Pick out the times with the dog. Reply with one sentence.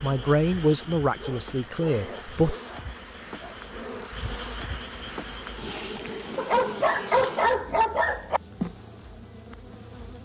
The dog can be heard from 1.1 to 3.5 s and from 6.3 to 8.4 s.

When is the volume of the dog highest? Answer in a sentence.
The volume of the dog peaks at 7 seconds.